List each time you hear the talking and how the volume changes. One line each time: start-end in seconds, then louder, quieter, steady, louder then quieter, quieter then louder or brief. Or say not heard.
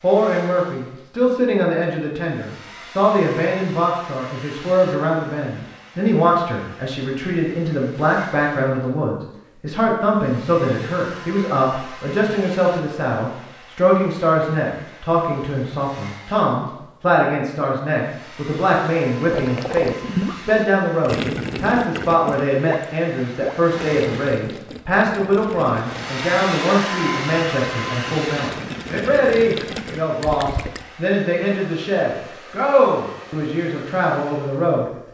0.0-34.9 steady.